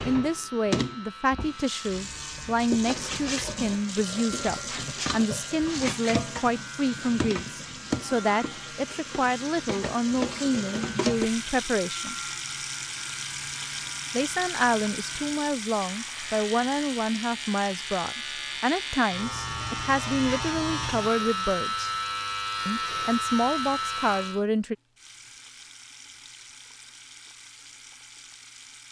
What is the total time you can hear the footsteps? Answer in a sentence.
You can't hear the footsteps here.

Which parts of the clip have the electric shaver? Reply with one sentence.
The electric shaver can be heard from 0.0 to 24.4 s.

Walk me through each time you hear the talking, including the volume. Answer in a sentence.
You can hear the talking from 0.0 to 12.2 s, at a steady volume; from 14.1 to 21.9 s, at a steady volume; and briefly from 22.6 to 24.8 s.